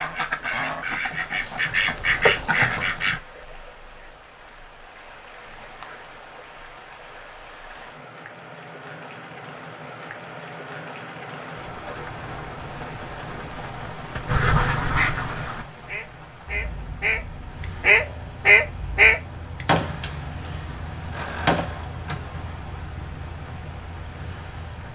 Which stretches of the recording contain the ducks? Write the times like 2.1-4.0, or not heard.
0.0-3.2, 14.2-19.6.